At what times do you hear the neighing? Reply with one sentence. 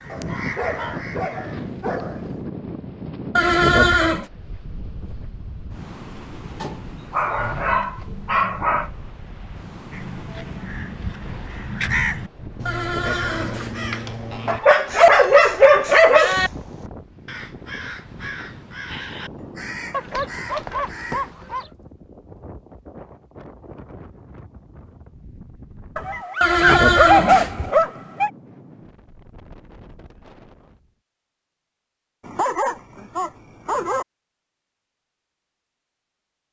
You can hear the neighing from 3.4 to 4.2 s, from 12.7 to 13.9 s and from 26.4 to 27.7 s.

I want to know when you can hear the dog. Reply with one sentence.
The dog can be heard from 0.1 to 2.1 s, from 6.6 to 8.9 s, from 14.4 to 16.5 s, from 19.9 to 21.7 s, from 25.9 to 28.3 s and from 32.2 to 34.0 s.